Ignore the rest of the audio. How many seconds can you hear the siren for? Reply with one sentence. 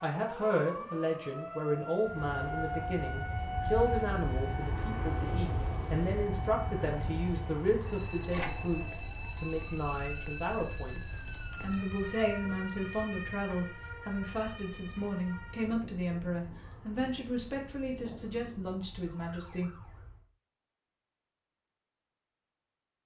You can hear the siren for 20 seconds altogether.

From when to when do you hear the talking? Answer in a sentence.
You can hear the talking from 0.0 to 11.0 s and from 11.6 to 19.7 s.